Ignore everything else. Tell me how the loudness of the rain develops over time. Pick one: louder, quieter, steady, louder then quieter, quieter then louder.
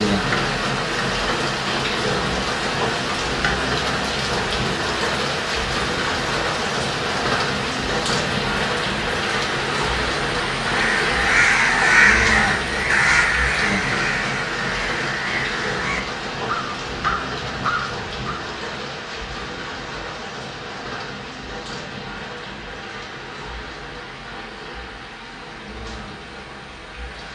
quieter.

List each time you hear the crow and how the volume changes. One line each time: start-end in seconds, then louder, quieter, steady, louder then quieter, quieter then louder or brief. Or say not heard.
10.6-18.4 quieter.